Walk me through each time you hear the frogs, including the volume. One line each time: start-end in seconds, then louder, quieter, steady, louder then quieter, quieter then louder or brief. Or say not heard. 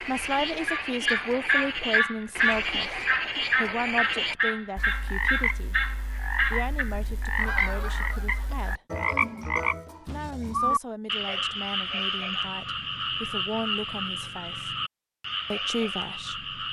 0.0-16.6 steady.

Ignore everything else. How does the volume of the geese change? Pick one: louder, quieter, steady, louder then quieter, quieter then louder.
quieter.